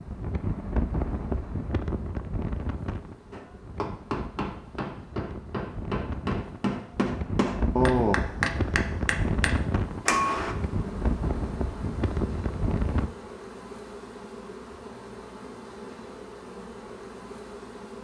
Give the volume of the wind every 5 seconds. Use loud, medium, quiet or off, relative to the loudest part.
loud, loud, loud, off.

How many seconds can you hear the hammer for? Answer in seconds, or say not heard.
7 s.